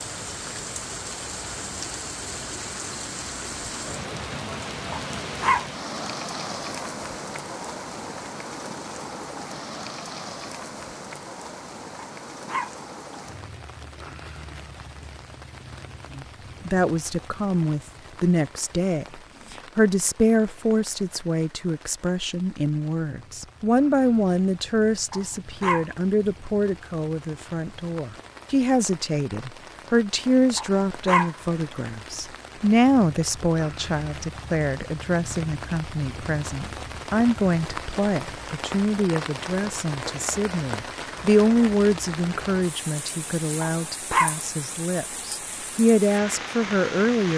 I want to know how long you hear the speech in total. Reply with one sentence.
The speech can be heard for 31 seconds in total.